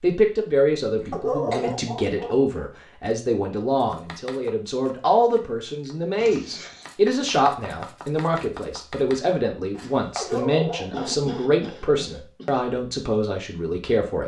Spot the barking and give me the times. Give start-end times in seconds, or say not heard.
1.1-2.7, 10.2-11.9.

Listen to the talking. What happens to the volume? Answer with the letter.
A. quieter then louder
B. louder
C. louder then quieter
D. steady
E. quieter
D.